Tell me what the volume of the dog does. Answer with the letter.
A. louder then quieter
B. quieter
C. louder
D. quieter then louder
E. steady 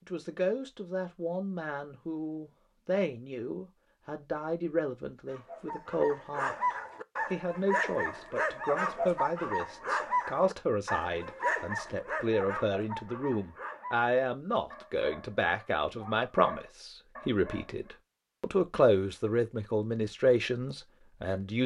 B.